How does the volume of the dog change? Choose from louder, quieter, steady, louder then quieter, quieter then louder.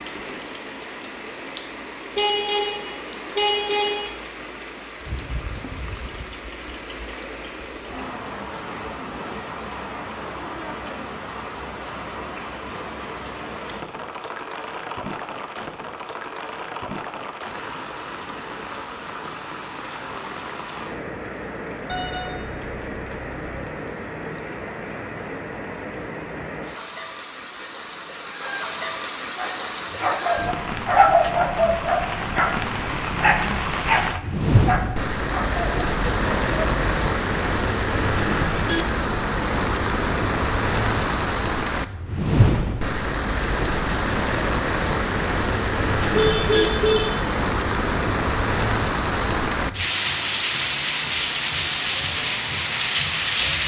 quieter.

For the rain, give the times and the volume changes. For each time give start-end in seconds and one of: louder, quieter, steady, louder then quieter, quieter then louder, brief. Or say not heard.
0.0-53.6 louder.